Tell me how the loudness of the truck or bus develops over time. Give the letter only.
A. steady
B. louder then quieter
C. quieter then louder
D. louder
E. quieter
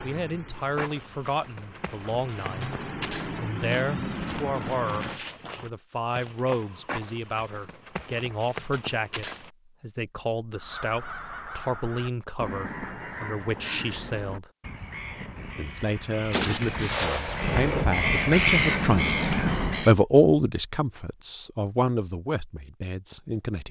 D.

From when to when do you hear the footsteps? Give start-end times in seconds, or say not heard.
0.6-9.5.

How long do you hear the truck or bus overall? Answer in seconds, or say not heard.
5 s.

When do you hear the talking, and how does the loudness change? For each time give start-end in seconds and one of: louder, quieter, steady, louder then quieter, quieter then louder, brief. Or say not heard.
0.0-2.7 brief
3.4-14.5 steady
15.6-23.6 louder then quieter.